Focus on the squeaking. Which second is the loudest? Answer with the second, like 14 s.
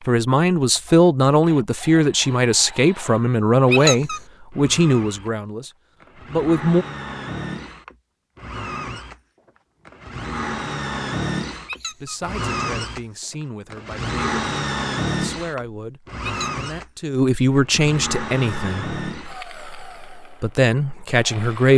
4 s.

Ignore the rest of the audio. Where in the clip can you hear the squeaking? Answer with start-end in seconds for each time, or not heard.
3.7-4.2, 11.7-12.2, 16.2-16.6.